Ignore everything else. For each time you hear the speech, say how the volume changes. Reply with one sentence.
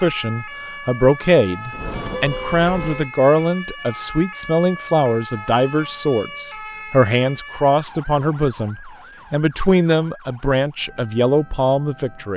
The speech can be heard from 0.0 to 12.3 s, at a steady volume.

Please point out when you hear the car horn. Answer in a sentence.
You can hear the car horn from 1.7 to 3.1 s.